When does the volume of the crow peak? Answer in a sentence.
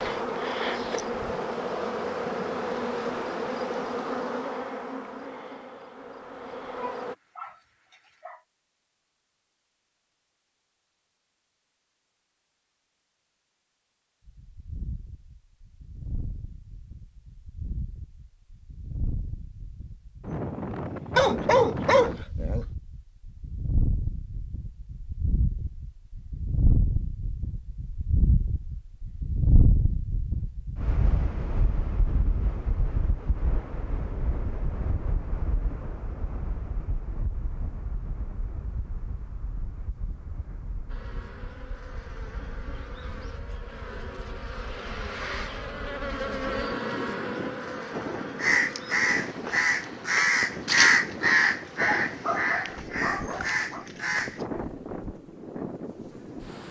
The loudest moment of the crow is at 51 seconds.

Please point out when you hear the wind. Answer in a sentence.
The wind can be heard from 14.2 to 56.6 s.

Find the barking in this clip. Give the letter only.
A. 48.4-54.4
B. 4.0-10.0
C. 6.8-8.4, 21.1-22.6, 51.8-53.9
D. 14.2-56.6
C.